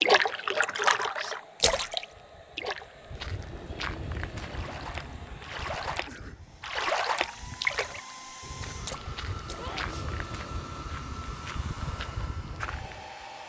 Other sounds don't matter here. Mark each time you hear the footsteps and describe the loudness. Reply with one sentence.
The footsteps can be heard from 2.0 to 13.2 s, getting quieter then louder.